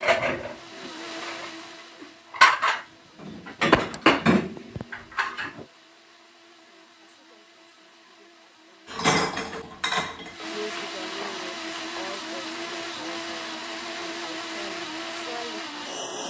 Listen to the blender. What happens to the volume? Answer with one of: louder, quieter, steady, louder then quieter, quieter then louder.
quieter then louder.